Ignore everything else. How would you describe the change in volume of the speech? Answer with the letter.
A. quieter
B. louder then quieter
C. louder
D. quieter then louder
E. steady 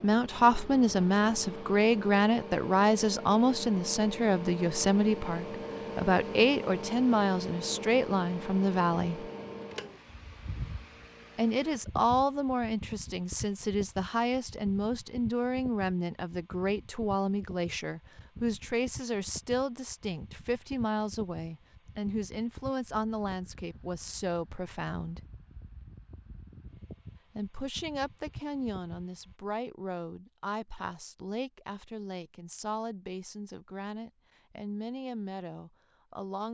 A.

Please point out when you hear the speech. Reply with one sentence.
You can hear the speech from 0.0 to 9.3 s, from 11.3 to 25.2 s and from 27.4 to 36.5 s.